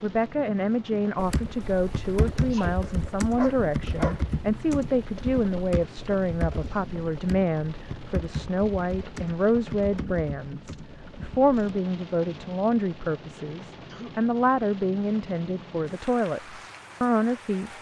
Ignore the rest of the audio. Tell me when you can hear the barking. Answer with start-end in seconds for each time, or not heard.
2.8-4.2.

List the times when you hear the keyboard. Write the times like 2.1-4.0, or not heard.
1.1-11.6.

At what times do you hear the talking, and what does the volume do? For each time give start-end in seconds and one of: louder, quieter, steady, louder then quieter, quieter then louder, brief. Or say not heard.
0.0-17.7 steady.